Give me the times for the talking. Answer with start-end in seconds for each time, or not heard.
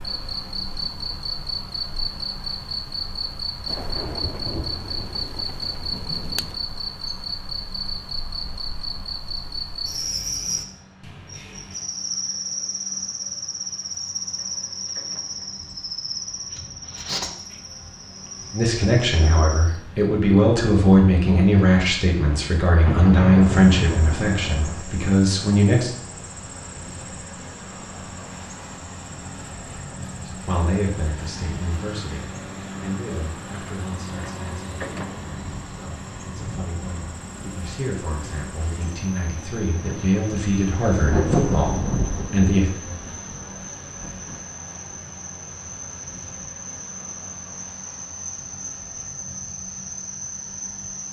18.5-25.9, 30.2-42.7.